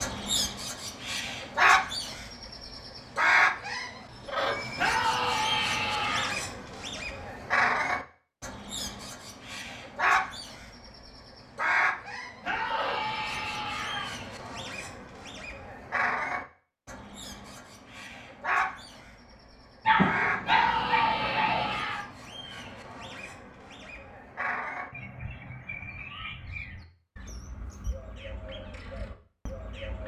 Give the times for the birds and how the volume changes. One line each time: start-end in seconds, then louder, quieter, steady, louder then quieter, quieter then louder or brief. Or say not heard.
0.0-30.0 quieter.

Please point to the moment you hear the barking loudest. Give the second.
20 s.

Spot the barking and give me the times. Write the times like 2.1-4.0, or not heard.
19.9-21.9.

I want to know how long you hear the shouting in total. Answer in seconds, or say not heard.
5 s.